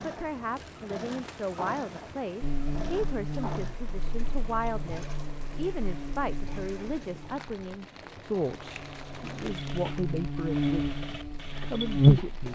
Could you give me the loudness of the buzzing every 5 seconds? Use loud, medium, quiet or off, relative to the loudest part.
quiet, quiet, loud.